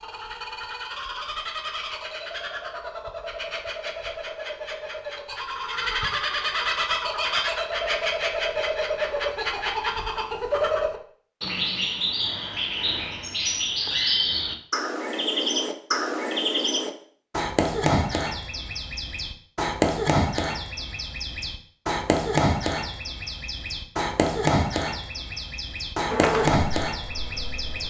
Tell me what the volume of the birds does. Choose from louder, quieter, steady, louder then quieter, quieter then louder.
louder.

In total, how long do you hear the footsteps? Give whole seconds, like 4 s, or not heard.
not heard.